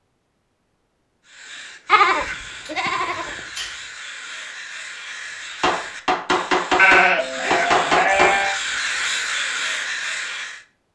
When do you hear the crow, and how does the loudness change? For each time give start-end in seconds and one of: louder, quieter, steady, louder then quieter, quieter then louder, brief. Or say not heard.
1.2-10.7 louder.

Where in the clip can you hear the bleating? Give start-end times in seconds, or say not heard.
1.9-3.5, 6.8-8.6.